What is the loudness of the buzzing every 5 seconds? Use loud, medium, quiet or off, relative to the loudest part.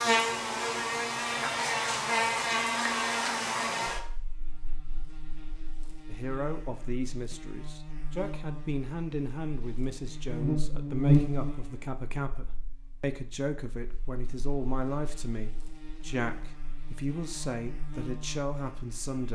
loud, quiet, loud, quiet.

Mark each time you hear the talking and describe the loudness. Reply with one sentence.
The talking can be heard from 6.0 to 19.3 s, at a steady volume.